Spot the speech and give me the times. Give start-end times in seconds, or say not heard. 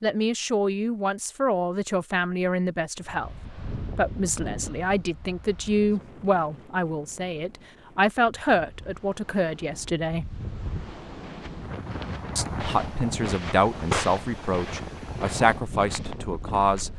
0.0-10.3, 12.3-16.9.